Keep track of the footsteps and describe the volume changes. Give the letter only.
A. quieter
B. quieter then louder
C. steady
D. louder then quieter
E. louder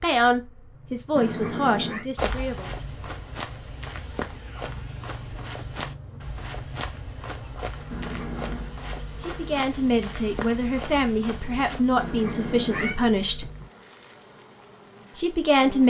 C.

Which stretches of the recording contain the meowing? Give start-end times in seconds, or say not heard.
1.1-2.0, 7.9-8.7, 11.9-12.9.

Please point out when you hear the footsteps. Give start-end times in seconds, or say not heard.
2.1-11.8.